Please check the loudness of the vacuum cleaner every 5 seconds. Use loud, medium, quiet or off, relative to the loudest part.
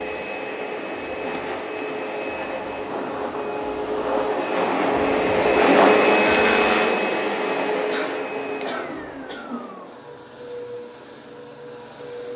medium, loud, quiet.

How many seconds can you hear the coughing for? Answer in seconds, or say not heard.
2 s.